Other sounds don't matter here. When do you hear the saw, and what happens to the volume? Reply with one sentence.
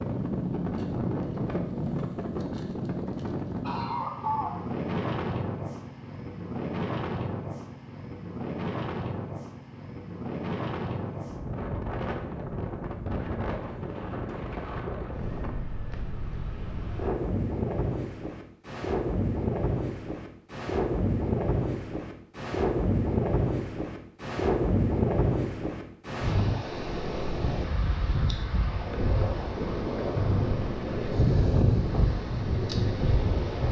You can't hear the saw here.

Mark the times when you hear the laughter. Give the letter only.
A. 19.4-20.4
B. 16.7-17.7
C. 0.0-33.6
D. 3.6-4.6
D.